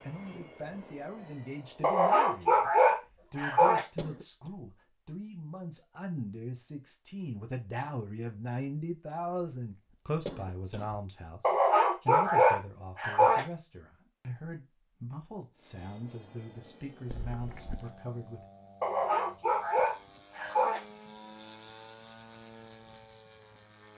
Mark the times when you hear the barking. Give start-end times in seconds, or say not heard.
1.8-3.9, 11.4-13.4, 18.8-20.8.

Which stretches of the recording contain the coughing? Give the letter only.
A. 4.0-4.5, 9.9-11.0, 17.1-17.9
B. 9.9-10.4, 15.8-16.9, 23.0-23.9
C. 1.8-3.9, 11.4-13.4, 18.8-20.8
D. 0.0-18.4
A.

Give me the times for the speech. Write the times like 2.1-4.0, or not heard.
0.0-18.4.